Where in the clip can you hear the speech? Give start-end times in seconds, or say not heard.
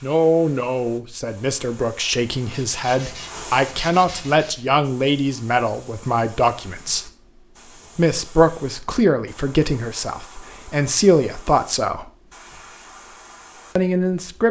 0.0-7.1, 8.0-12.1, 13.8-14.4.